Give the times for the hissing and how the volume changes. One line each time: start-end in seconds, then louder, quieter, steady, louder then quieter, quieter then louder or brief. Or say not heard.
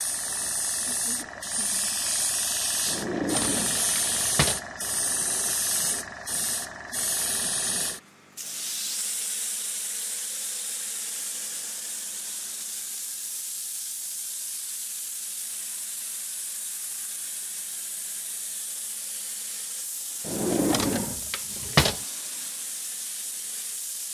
0.0-24.0 quieter.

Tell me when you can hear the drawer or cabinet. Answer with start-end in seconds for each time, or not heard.
2.9-4.7, 20.2-22.0.